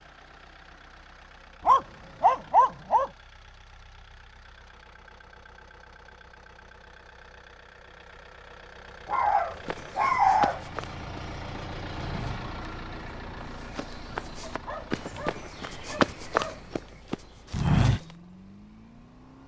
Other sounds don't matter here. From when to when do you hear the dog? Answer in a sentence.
You can hear the dog from 1.6 to 3.1 s, from 9.1 to 10.6 s and from 14.4 to 16.8 s.